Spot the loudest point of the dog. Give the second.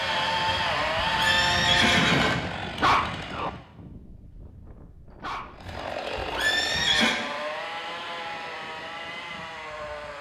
3 s.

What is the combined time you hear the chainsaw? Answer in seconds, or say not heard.
8 s.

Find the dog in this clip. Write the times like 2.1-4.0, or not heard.
2.8-3.5, 5.2-5.8.